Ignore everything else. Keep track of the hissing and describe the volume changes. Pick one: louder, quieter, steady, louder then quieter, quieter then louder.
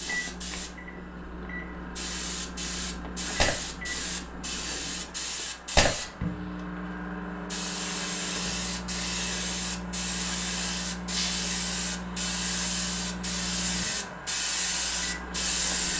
louder.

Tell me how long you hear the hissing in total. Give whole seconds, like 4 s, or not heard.
16 s.